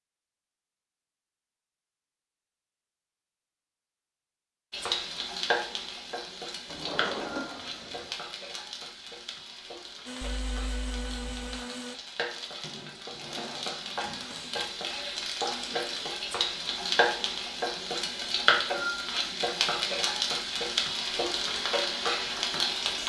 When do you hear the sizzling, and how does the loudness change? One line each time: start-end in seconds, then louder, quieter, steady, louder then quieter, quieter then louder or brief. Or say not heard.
4.7-23.0 quieter then louder.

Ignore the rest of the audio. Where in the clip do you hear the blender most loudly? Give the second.
11 s.